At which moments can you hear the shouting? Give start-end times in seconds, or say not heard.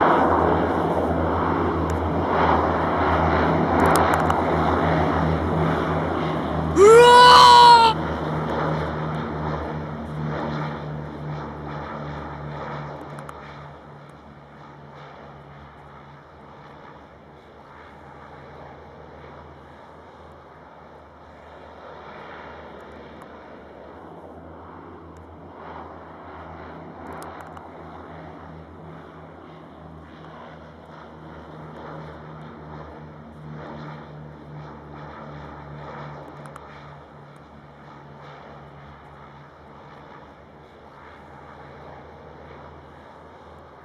6.8-8.0.